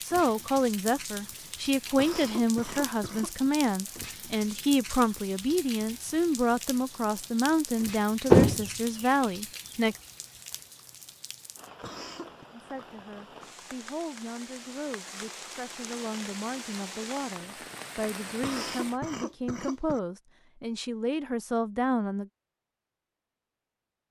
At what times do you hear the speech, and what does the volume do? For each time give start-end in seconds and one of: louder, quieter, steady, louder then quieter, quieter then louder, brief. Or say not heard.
0.0-9.9 steady
12.5-22.3 louder.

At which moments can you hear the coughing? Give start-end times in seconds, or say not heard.
1.9-3.5, 11.8-12.4, 18.4-20.0.